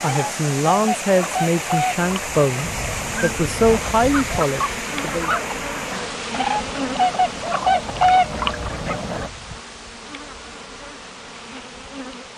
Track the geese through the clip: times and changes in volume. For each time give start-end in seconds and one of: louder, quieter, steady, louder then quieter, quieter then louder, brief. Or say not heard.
0.0-9.3 quieter then louder.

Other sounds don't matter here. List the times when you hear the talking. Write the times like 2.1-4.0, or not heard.
0.0-5.3.